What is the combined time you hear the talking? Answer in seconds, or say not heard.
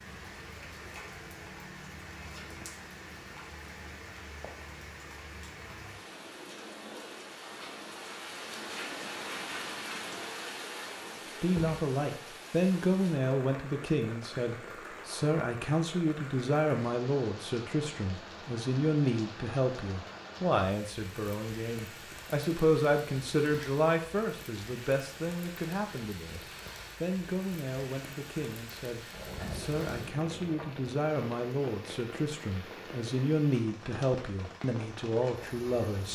24 s.